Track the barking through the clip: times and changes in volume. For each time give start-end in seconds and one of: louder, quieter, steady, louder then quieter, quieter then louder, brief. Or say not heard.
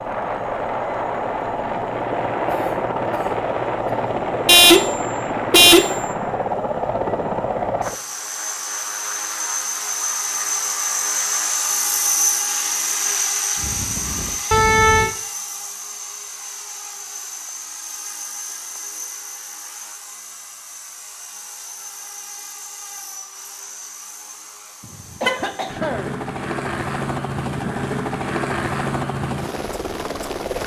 not heard.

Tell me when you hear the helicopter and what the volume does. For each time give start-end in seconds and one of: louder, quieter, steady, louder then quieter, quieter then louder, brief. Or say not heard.
0.0-30.6 quieter then louder.